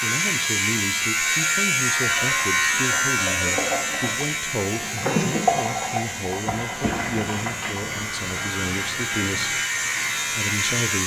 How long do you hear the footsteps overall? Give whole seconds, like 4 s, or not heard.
not heard.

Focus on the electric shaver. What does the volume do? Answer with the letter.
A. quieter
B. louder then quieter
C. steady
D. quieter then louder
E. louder
D.